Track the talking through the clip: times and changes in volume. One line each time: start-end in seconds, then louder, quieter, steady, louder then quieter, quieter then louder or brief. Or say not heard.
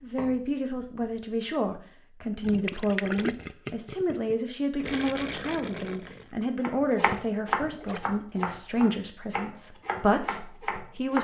0.0-11.1 steady.